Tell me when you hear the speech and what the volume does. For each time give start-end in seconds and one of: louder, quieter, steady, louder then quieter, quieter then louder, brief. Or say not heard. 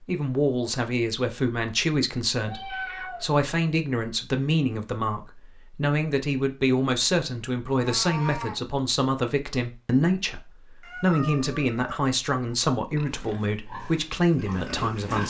0.1-15.2 steady.